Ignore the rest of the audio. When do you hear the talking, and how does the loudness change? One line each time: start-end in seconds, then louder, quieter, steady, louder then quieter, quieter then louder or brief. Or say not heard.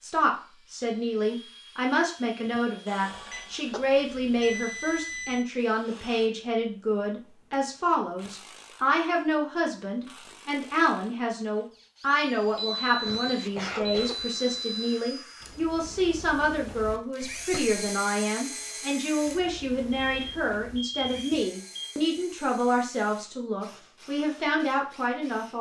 0.0-25.5 steady.